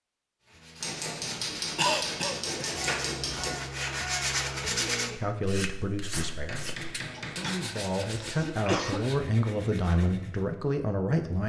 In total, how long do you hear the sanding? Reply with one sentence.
The sanding can be heard for 10 seconds in total.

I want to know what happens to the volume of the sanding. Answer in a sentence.
The loudness of the sanding goes up, then down.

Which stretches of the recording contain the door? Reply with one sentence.
The door can't be heard in this clip.